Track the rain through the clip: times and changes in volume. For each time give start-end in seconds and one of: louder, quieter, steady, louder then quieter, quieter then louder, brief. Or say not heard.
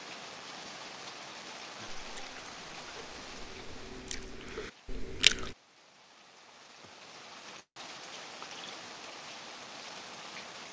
0.0-10.6 quieter then louder.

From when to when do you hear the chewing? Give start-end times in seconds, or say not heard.
1.9-5.5.